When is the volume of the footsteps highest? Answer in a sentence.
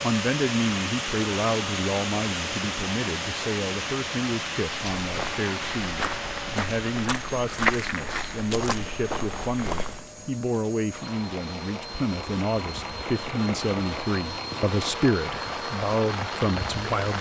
The loudest moment of the footsteps is at 8 seconds.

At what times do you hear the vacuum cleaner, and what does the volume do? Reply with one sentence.
The vacuum cleaner can be heard from 0.0 to 17.1 s, getting quieter then louder.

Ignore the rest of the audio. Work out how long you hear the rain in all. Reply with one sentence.
The rain can be heard for 17 seconds in total.